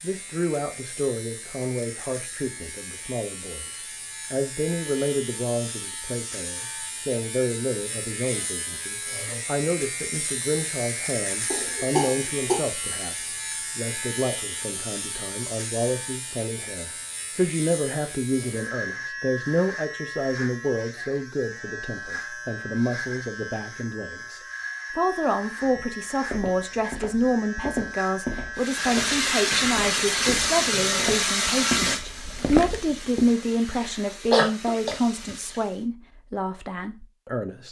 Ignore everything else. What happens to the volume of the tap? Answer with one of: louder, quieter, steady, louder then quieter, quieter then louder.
quieter.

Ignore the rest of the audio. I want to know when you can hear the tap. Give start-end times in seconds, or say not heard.
28.6-35.9.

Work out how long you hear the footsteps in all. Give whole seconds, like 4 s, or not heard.
8 s.